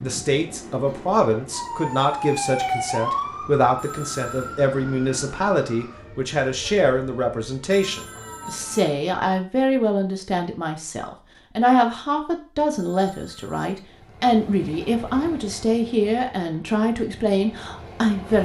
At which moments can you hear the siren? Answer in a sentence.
You can hear the siren from 1.5 to 8.9 s.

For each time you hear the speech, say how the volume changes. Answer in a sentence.
The speech can be heard from 0.0 to 18.4 s, at a steady volume.